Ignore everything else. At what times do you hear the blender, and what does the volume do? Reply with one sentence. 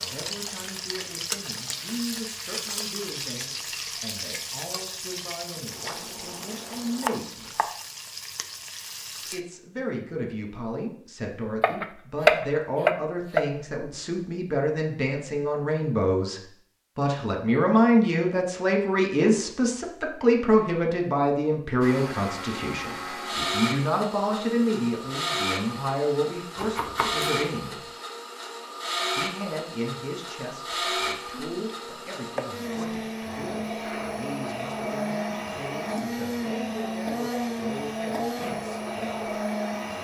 The blender can be heard from 21.8 to 39.9 s, at a steady volume.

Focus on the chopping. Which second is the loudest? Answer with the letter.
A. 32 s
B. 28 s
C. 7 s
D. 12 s
D.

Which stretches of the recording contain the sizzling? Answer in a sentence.
The sizzling can be heard from 0.0 to 9.4 s.